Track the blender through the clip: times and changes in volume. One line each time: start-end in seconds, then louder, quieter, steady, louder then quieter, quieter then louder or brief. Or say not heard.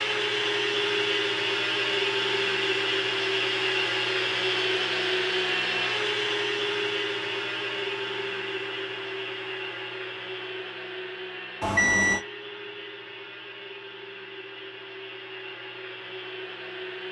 0.0-17.0 quieter.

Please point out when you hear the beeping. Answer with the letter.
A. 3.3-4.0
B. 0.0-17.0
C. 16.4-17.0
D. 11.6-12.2
D.